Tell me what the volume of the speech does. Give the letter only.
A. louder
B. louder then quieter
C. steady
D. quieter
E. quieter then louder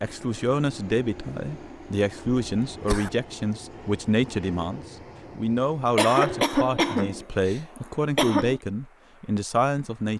C.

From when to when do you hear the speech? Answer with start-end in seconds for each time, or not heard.
0.0-10.1.